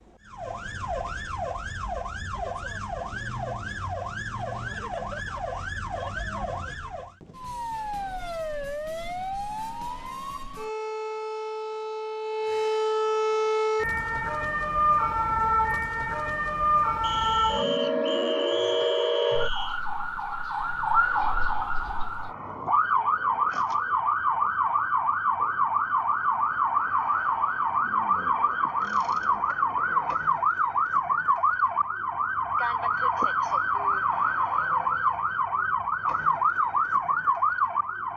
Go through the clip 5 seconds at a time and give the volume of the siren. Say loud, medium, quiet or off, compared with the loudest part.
medium, medium, loud, loud, loud, loud, loud, loud.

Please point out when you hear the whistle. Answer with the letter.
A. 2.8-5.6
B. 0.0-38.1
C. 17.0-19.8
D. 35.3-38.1
C.